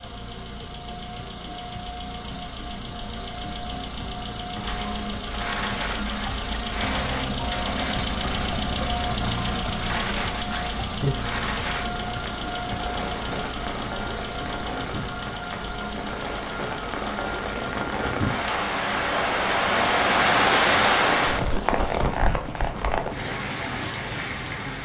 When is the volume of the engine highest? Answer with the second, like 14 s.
9 s.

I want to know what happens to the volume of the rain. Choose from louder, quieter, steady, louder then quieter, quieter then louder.
louder.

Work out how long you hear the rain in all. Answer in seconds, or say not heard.
20 s.